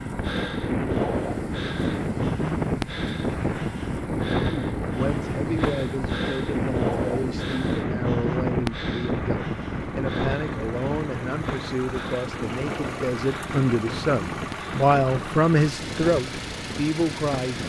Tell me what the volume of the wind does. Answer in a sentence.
The loudness of the wind goes down.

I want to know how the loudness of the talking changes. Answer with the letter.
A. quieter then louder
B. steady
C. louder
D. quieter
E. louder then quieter
C.